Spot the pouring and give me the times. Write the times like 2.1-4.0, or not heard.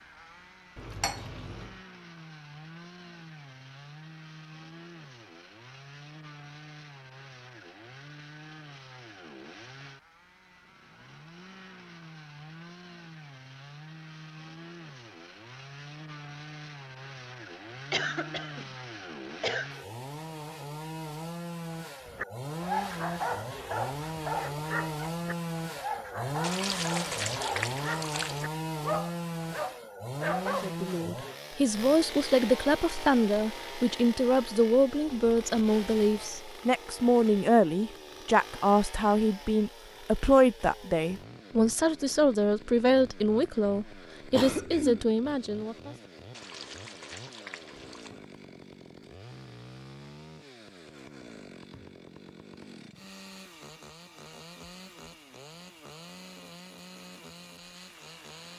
0.8-1.8, 26.4-28.5, 46.3-48.1.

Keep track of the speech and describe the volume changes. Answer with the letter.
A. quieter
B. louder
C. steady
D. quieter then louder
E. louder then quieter
C.